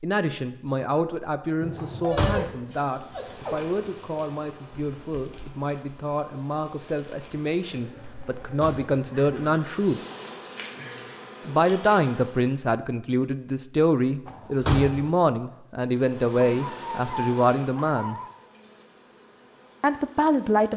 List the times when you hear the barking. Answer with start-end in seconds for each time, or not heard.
1.6-3.6, 16.4-18.3.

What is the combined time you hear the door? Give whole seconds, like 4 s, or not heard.
2 s.